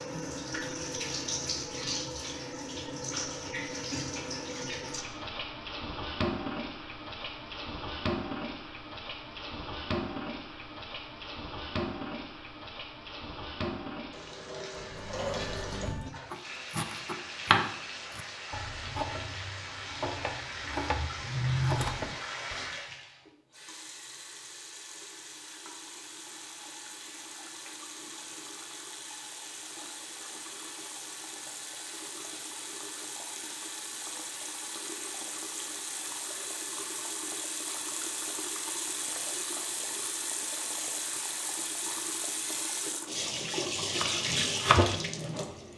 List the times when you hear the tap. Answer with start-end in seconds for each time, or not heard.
0.0-45.7.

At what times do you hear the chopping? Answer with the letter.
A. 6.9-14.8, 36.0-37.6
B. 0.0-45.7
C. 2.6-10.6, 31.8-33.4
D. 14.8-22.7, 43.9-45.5
D.